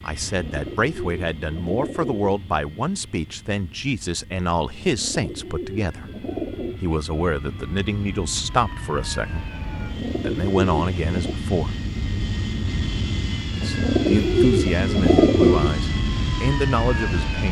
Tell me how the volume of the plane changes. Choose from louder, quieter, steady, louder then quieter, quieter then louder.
louder.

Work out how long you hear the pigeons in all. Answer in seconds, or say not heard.
8 s.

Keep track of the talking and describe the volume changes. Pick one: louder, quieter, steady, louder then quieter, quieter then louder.
steady.